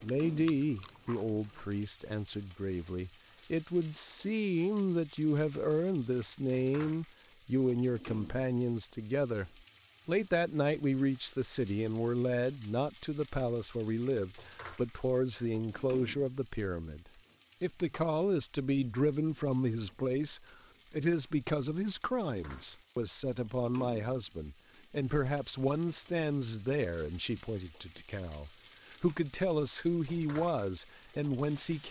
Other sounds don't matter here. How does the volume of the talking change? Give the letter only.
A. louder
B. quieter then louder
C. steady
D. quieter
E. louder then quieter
C.